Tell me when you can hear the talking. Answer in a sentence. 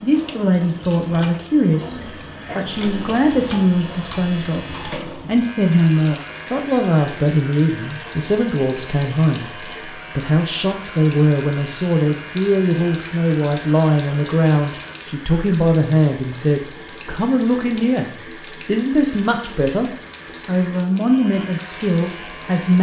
You can hear the talking from 0.0 to 22.7 s.